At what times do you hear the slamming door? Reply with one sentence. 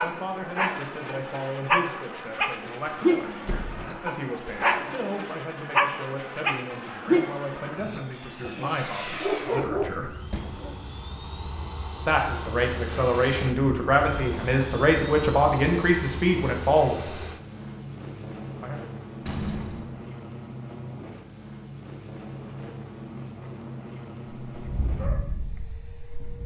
The slamming door can be heard from 3.5 to 3.9 s, from 10.3 to 10.8 s and from 19.2 to 19.9 s.